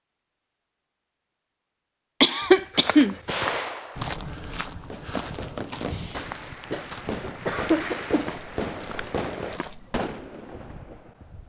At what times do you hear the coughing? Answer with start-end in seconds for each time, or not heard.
2.2-3.1, 6.7-8.3.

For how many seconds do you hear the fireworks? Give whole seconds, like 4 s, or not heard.
9 s.